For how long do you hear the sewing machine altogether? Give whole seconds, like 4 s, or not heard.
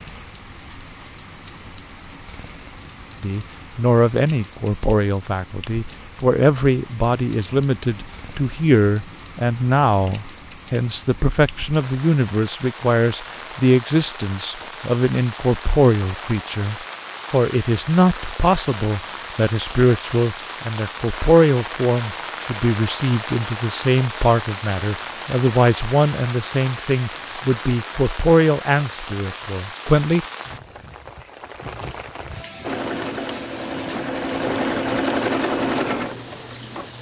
4 s.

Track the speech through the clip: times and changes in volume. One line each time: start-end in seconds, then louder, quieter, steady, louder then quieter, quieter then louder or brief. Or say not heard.
3.2-30.2 steady.